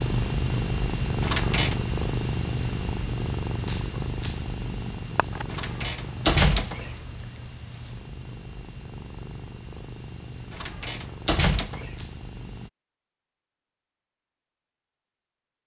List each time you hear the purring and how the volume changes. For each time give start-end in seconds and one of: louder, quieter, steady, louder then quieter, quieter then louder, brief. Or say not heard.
0.0-12.7 quieter.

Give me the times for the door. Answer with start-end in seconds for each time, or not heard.
1.2-1.8, 5.5-7.0, 10.5-12.0.